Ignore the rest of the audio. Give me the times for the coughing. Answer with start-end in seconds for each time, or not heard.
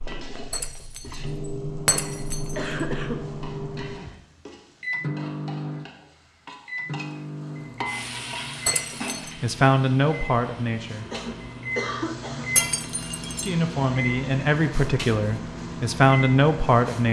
2.5-4.2, 11.1-12.8.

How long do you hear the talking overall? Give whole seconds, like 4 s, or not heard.
5 s.